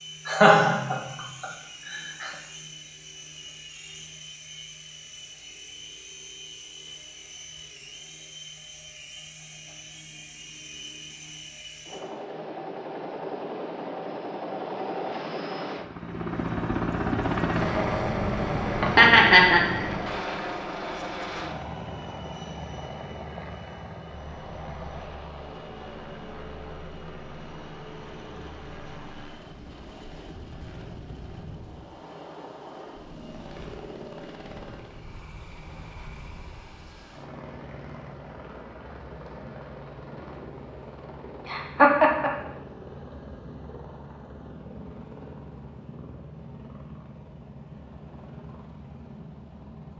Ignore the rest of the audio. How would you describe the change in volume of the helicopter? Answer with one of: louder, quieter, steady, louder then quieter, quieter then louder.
louder then quieter.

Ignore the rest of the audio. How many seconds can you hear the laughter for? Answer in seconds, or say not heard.
4 s.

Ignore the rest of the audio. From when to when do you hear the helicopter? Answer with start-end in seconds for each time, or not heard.
0.0-49.9.